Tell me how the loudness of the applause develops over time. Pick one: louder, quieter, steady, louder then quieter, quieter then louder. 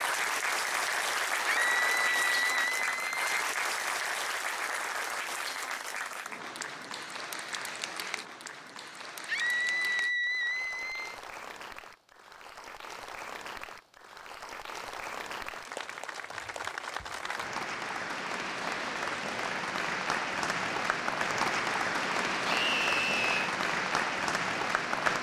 quieter then louder.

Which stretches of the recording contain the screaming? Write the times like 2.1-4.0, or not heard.
1.4-3.2, 9.2-11.2, 22.4-23.6.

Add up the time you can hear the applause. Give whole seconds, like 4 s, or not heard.
25 s.